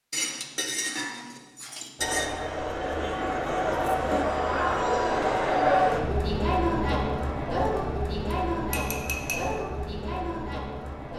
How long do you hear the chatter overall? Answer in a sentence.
You can hear the chatter for 9 seconds altogether.